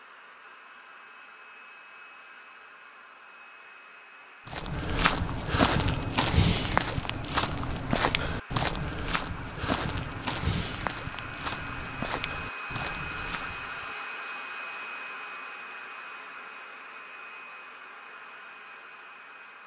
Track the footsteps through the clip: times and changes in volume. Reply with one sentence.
The footsteps can be heard from 4.5 to 13.9 s, getting quieter.